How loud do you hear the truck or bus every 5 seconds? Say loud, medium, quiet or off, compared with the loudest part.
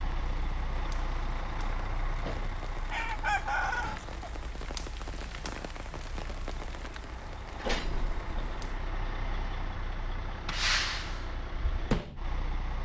medium, medium, loud.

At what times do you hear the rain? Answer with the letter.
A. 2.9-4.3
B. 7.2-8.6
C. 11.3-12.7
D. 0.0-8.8
D.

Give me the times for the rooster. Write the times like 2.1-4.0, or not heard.
2.9-4.3.